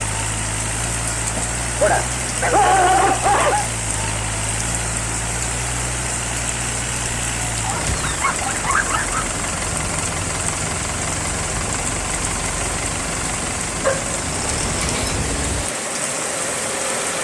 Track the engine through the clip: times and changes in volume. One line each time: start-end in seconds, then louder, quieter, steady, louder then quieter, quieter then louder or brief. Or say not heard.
0.0-17.2 steady.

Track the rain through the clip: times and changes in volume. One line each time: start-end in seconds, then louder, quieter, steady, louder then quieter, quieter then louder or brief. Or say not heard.
0.0-17.2 steady.